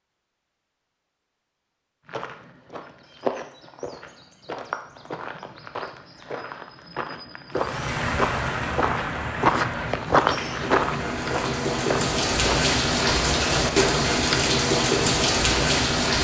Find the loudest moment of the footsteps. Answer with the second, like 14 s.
10 s.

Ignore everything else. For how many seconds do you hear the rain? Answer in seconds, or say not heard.
9 s.